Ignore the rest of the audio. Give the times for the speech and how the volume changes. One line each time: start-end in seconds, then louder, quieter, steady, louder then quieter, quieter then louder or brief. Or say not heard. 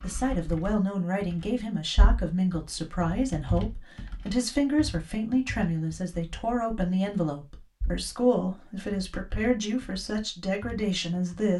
0.0-11.5 steady.